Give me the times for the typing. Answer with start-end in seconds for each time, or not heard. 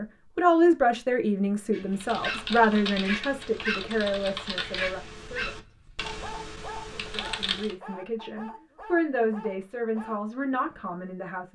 1.9-7.8.